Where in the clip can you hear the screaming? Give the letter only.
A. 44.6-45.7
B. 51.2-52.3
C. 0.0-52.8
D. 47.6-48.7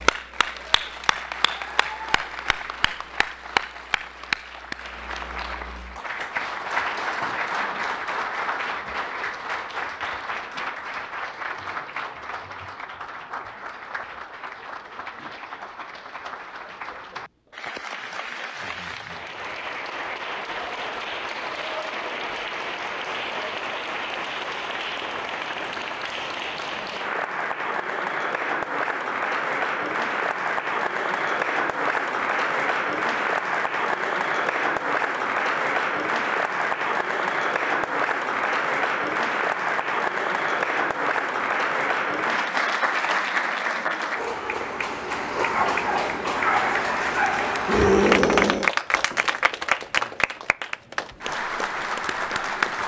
D.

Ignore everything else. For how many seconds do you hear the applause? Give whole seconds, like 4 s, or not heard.
53 s.